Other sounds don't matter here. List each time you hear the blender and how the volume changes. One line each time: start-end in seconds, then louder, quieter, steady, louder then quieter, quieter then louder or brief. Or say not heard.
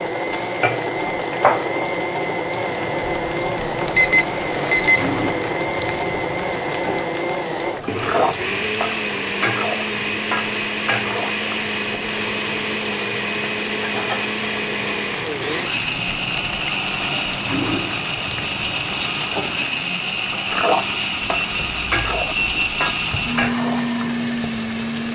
0.0-25.1 steady.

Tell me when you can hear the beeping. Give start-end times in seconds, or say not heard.
4.0-5.1, 21.2-23.6.